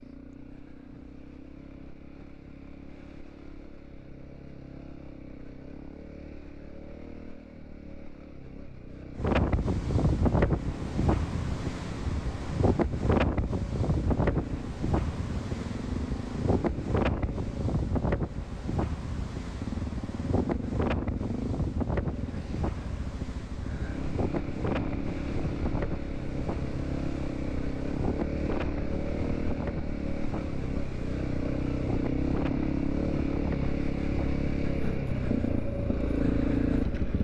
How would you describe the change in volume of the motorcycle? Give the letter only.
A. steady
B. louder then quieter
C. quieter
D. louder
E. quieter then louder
D.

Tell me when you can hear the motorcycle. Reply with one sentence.
You can hear the motorcycle from 0.0 to 37.2 s.